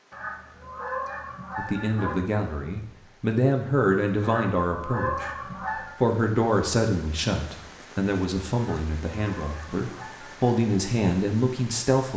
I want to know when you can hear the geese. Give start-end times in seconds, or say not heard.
0.1-2.2, 4.2-6.0, 8.6-10.6.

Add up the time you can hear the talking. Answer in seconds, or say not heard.
10 s.